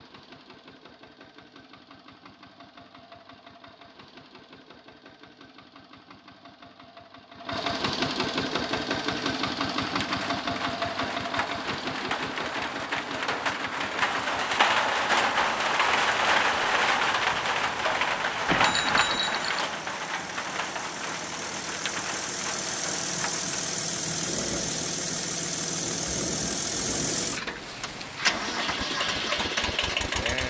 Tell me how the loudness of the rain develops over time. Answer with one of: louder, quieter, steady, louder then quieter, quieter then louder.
louder then quieter.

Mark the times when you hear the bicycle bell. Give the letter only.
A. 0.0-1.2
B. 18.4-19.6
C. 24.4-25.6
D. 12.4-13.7
B.